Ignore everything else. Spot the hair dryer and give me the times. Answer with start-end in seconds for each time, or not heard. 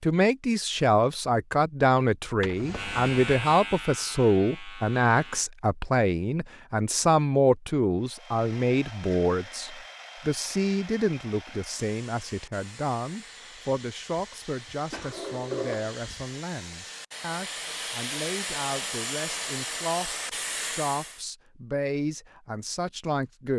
8.0-21.2.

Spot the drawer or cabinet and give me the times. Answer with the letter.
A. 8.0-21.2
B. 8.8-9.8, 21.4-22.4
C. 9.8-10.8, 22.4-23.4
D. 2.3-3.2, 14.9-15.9
D.